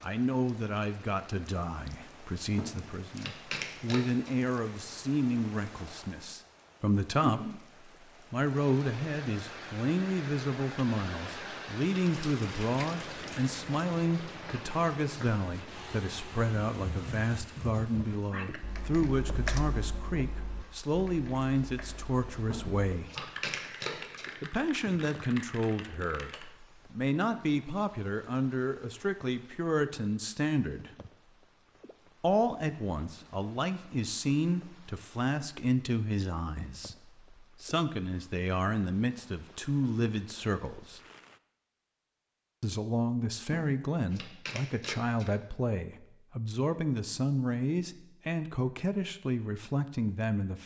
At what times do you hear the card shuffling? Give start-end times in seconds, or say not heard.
2.5-4.3, 22.4-24.4, 43.5-45.5.